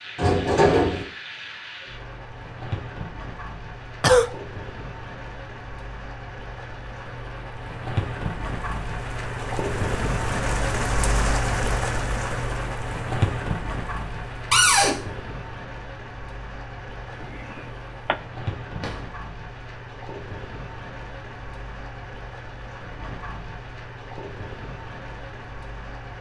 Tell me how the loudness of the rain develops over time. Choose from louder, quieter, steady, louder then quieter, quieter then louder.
louder then quieter.